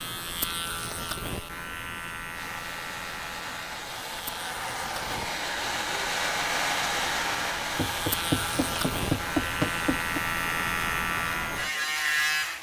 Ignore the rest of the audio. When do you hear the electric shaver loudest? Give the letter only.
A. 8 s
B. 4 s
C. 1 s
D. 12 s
D.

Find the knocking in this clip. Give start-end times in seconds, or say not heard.
7.8-10.2.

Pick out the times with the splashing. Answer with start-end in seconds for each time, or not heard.
not heard.